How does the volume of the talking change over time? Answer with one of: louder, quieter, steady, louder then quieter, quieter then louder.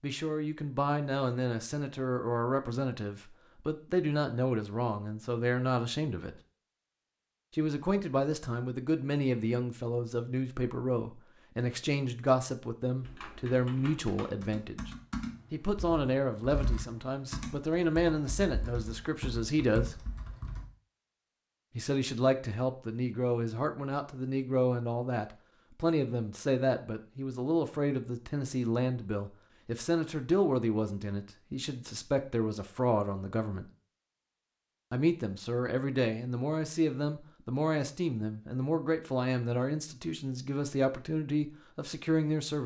steady.